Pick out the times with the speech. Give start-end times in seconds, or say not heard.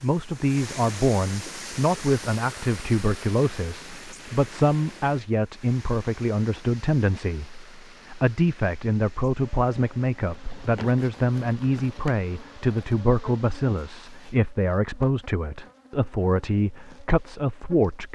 0.0-18.1.